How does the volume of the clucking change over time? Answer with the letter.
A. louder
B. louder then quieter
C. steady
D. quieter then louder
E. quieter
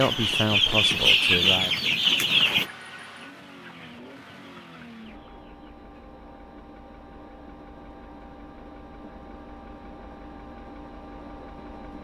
E.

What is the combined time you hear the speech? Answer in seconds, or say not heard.
2 s.